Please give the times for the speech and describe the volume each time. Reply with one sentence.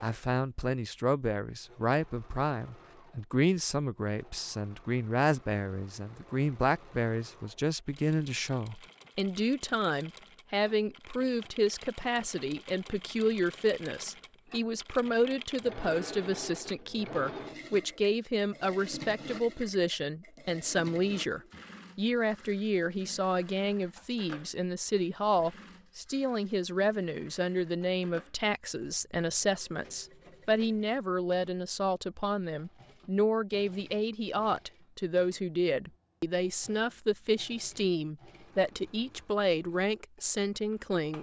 The speech can be heard from 0.0 to 41.1 s, at a steady volume.